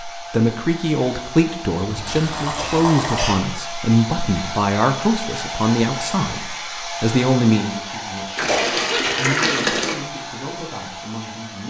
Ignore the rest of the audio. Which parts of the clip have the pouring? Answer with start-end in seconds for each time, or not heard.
1.8-3.3, 8.3-9.9.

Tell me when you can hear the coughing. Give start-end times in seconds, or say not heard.
2.5-3.4, 8.4-9.1.